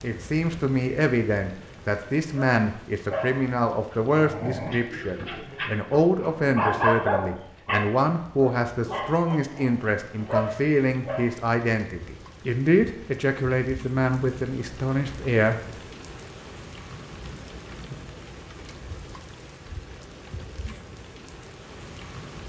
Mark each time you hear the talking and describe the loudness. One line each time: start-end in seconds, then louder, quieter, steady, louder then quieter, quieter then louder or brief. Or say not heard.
0.0-15.6 steady.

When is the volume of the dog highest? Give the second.
7 s.